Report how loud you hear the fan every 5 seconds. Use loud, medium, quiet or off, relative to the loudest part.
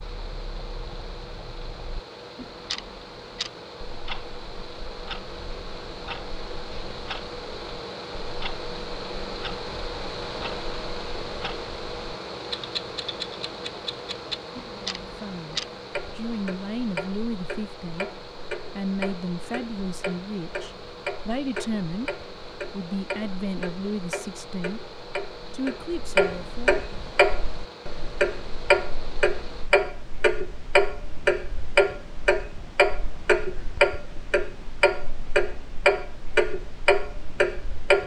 medium, loud, loud, medium, medium, medium, off, off.